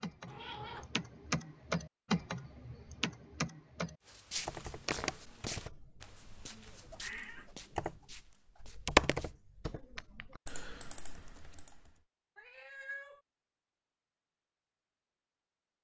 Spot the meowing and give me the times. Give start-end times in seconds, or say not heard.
0.2-0.9, 6.7-7.5, 12.3-13.2.